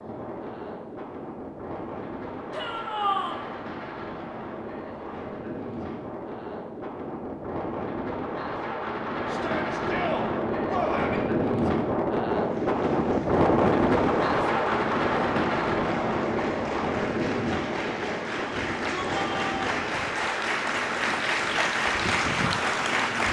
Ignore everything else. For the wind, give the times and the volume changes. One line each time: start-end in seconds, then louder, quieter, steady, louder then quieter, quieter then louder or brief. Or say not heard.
0.0-23.2 louder then quieter.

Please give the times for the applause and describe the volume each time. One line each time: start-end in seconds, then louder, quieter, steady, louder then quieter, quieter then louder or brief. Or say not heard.
12.3-23.2 louder.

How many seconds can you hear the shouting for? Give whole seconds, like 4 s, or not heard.
4 s.